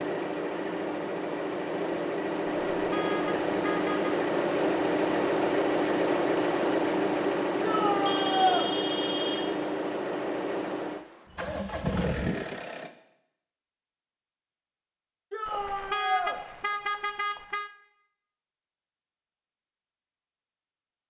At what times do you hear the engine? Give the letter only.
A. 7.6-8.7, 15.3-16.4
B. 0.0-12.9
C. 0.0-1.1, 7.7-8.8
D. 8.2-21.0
B.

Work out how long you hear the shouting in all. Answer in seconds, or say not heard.
2 s.